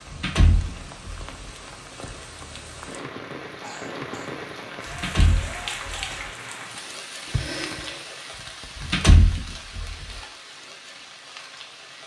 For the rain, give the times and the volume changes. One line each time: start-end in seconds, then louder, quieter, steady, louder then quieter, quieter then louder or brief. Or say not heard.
0.0-12.0 louder then quieter.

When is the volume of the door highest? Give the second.
9 s.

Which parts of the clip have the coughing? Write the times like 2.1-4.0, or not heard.
3.6-4.4, 7.2-8.7.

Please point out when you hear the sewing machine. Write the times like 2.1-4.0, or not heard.
not heard.